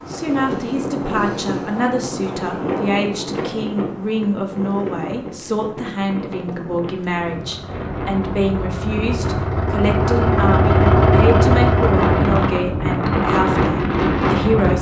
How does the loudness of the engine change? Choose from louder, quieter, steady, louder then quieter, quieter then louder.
louder.